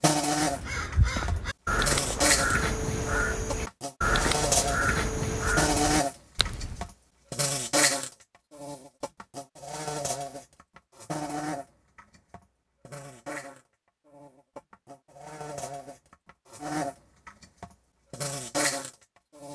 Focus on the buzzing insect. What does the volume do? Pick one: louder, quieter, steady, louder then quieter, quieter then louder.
quieter then louder.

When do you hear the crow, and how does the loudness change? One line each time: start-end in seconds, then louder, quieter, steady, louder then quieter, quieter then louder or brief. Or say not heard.
0.3-6.9 steady.